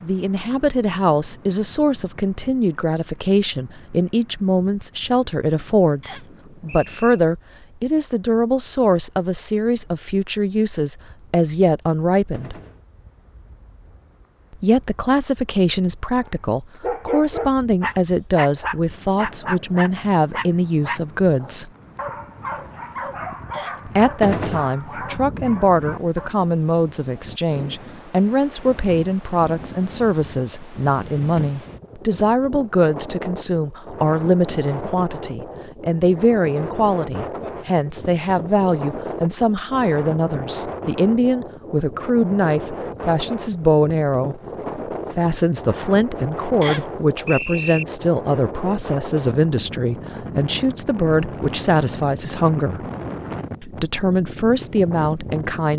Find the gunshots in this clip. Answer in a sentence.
The gunshots can be heard from 12.3 to 12.8 s, from 24.2 to 24.7 s and from 45.1 to 45.5 s.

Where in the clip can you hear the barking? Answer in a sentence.
You can hear the barking from 16.8 to 26.4 s.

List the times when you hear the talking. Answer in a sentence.
You can hear the talking from 0.0 to 12.6 s, from 14.5 to 21.7 s, from 23.9 to 44.4 s, from 45.1 to 52.9 s and from 53.6 to 55.7 s.